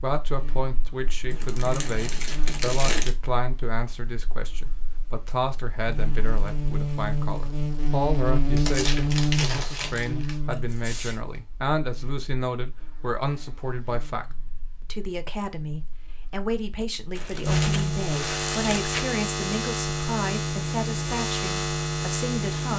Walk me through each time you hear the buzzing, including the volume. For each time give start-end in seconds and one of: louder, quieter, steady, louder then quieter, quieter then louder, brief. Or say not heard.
0.0-22.7 louder.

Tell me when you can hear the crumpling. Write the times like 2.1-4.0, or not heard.
1.3-3.1, 8.6-10.3, 17.1-19.0.